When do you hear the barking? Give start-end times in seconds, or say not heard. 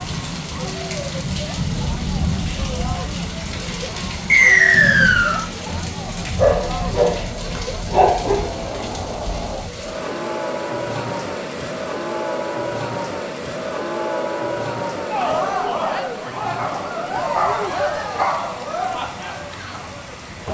6.3-8.4, 16.6-18.6.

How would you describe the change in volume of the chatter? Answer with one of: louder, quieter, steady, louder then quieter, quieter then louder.
louder.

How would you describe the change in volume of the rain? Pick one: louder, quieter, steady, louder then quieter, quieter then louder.
quieter.